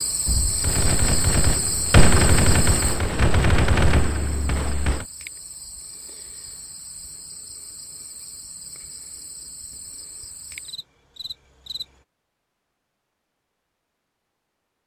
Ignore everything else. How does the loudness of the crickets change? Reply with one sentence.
The loudness of the crickets goes down.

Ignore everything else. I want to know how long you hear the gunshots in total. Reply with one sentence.
The gunshots can be heard for 5 seconds in total.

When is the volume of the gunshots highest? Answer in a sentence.
The loudest moment of the gunshots is at 2 seconds.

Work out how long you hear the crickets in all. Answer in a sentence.
The crickets can be heard for 12 seconds in total.